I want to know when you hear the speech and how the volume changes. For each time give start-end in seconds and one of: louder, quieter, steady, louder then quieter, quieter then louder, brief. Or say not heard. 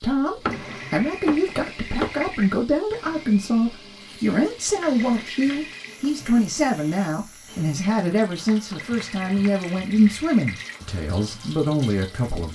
0.0-12.4 steady.